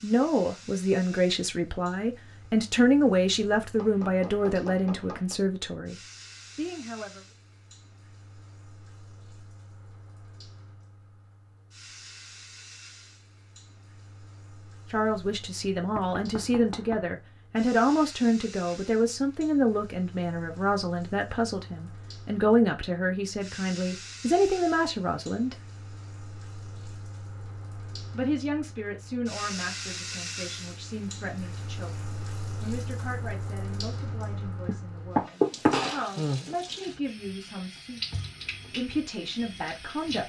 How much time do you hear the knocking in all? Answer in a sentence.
You can hear the knocking for 5 seconds altogether.